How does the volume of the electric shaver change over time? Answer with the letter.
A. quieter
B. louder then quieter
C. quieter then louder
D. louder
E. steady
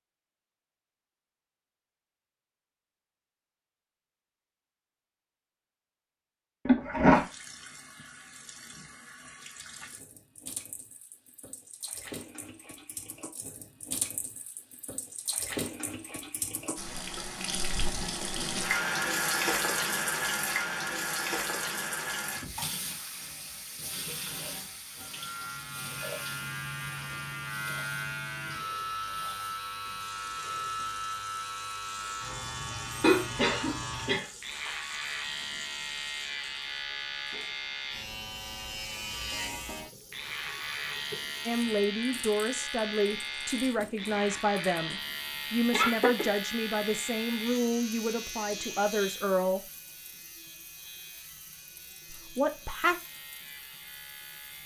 A.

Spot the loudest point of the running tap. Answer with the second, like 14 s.
19 s.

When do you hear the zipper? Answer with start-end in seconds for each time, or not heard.
not heard.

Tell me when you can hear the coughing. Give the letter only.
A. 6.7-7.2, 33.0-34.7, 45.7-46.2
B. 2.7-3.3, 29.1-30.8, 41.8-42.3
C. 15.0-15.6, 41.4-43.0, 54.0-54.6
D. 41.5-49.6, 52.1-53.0
A.